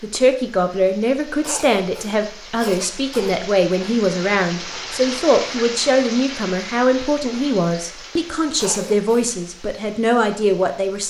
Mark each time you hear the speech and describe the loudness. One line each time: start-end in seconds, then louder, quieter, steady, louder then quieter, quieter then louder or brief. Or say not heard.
0.0-11.0 steady.